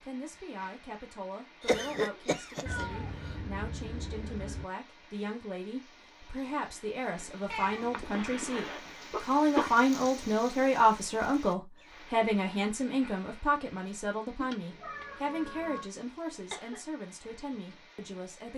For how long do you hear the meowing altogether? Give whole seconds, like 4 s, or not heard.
5 s.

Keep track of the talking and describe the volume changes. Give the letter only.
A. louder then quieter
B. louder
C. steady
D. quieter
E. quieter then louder
A.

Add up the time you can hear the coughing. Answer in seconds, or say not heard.
4 s.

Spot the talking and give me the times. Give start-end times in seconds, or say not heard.
0.0-18.5.